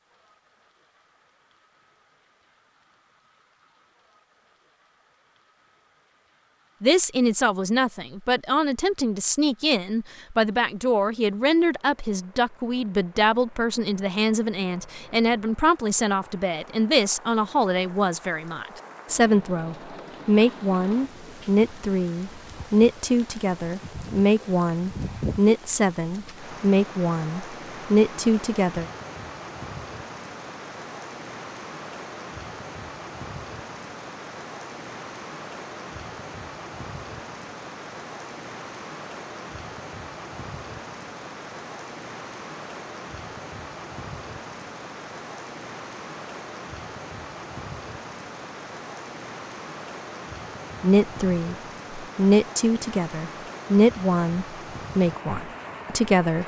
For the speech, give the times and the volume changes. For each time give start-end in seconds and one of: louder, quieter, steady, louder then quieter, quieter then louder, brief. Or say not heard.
6.8-28.9 steady
50.8-56.4 louder then quieter.